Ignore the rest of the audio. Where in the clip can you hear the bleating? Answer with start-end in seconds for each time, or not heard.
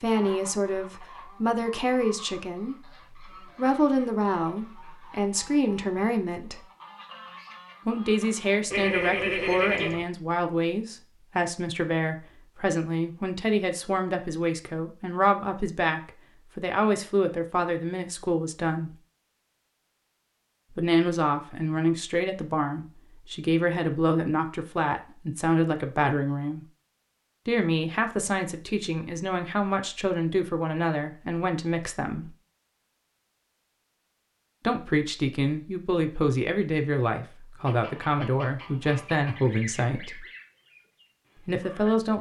8.7-10.1.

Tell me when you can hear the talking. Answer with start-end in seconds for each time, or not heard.
0.0-6.6, 7.8-18.9, 20.8-26.6, 27.4-32.3, 34.6-40.2, 41.5-42.1.